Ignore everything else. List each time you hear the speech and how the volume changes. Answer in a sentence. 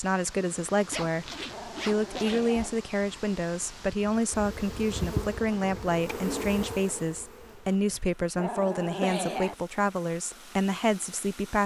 The speech can be heard from 0.0 to 11.6 s, at a steady volume.